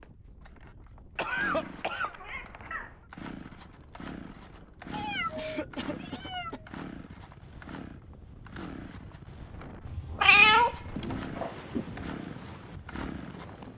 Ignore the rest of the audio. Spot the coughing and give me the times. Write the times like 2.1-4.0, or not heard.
1.1-2.1, 5.3-6.6, 10.9-11.8.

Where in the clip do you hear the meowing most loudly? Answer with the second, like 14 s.
10 s.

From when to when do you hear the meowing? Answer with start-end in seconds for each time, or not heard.
1.2-3.0, 4.9-6.5, 9.8-11.2.